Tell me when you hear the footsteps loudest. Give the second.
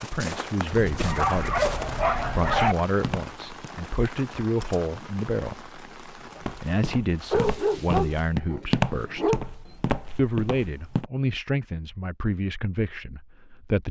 9 s.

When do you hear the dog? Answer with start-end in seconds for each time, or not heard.
0.7-2.8, 7.3-9.4.